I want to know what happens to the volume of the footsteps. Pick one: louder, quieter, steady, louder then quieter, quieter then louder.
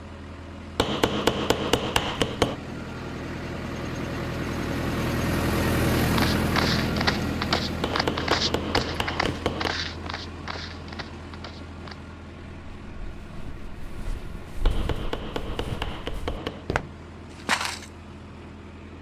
quieter then louder.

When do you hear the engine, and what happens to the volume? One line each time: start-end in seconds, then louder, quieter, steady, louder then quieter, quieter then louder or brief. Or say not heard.
0.0-18.9 louder then quieter.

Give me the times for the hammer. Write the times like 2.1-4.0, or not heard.
0.8-2.5, 7.8-9.8, 14.7-16.6.